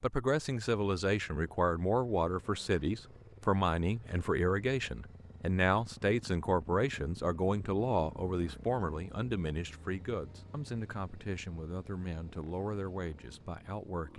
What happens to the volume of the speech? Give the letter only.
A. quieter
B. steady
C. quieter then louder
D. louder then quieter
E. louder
A.